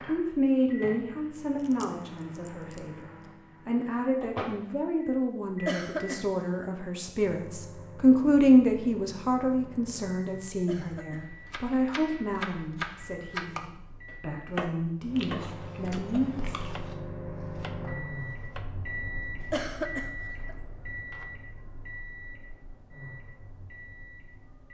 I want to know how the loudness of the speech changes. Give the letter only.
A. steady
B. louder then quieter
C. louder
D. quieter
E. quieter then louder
B.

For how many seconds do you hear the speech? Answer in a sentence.
You can hear the speech for 17 seconds altogether.